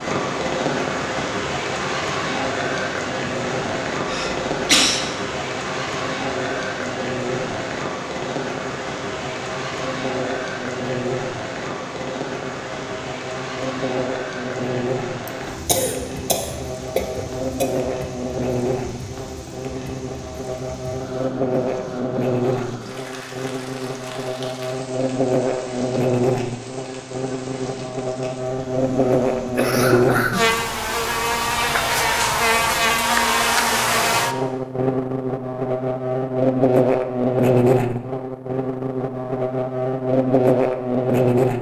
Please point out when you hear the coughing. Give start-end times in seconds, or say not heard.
4.0-5.0, 15.2-17.7, 28.9-30.6.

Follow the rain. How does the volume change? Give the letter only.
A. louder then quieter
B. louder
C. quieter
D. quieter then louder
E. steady
C.